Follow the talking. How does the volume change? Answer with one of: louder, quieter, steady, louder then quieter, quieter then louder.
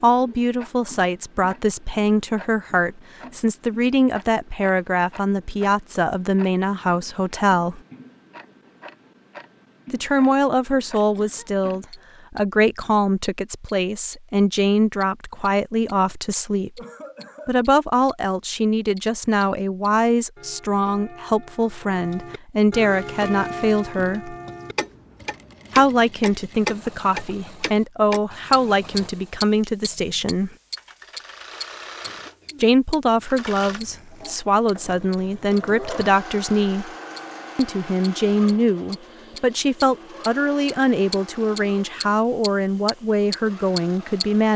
steady.